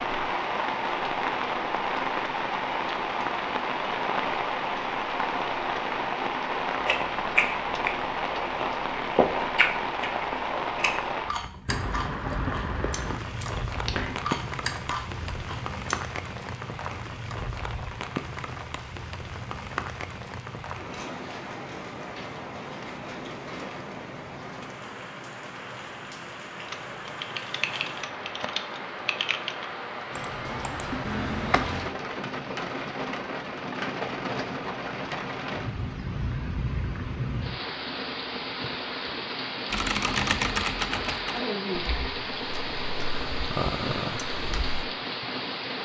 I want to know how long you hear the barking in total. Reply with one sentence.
The barking can't be heard in this clip.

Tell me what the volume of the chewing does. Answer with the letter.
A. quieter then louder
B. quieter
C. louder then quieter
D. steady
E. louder
A.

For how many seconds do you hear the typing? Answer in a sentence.
You can hear the typing for 10 seconds altogether.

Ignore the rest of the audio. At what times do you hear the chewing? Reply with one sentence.
The chewing can be heard from 6.8 to 16.0 s.